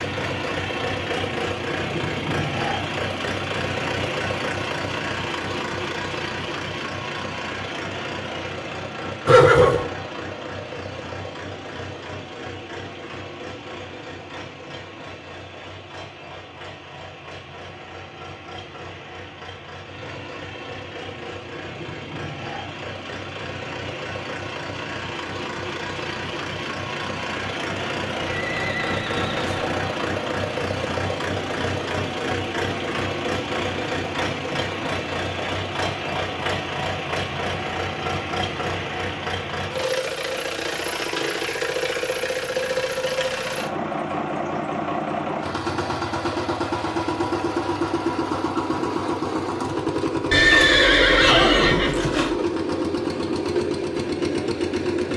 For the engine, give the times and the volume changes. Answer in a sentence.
The engine can be heard from 0.0 to 55.1 s, getting quieter then louder.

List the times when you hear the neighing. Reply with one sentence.
You can hear the neighing from 9.2 to 9.8 s, from 28.2 to 29.6 s and from 50.3 to 52.3 s.